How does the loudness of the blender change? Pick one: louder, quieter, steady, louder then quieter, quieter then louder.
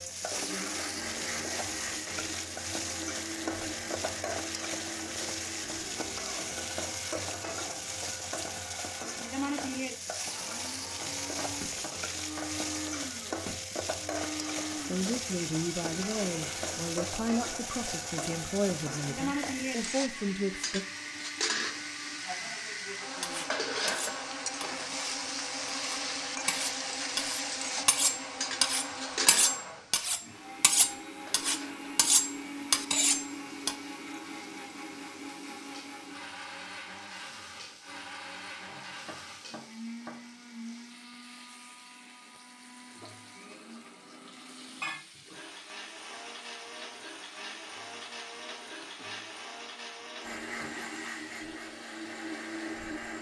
steady.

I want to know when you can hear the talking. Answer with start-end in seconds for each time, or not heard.
14.8-20.9.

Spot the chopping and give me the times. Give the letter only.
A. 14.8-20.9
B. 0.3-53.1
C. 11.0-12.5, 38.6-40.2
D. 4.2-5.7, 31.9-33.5
C.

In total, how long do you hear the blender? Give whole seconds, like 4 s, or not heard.
53 s.